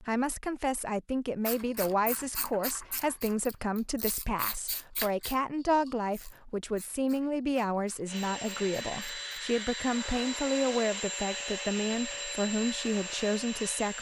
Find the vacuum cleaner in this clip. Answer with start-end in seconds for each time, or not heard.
8.1-13.9.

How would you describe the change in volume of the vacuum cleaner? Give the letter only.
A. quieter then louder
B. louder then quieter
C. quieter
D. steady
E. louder
D.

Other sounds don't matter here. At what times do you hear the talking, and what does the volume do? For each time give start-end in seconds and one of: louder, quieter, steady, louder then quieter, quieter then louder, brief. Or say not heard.
0.0-13.9 steady.